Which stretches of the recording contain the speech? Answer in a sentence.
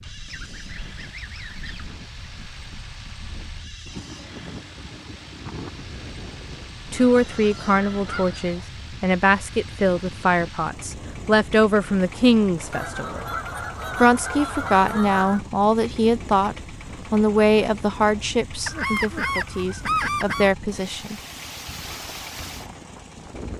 You can hear the speech from 6.9 to 13.2 s and from 14.0 to 21.1 s.